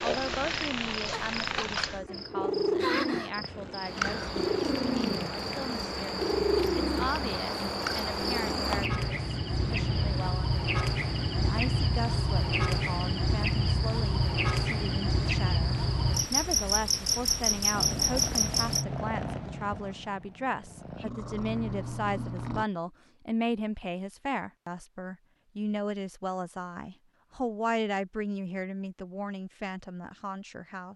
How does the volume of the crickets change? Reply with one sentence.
The volume of the crickets goes up.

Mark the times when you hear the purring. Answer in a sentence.
The purring can be heard from 0.0 to 10.3 s and from 17.7 to 22.6 s.